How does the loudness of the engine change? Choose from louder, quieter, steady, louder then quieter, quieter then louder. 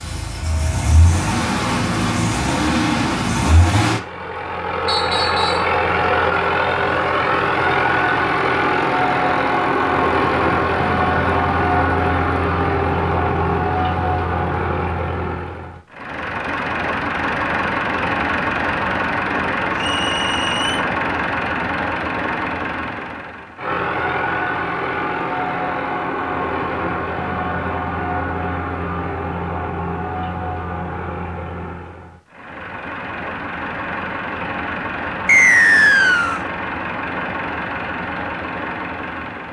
quieter.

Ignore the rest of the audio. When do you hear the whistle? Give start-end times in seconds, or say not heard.
4.8-5.7, 19.8-20.9, 35.2-36.4.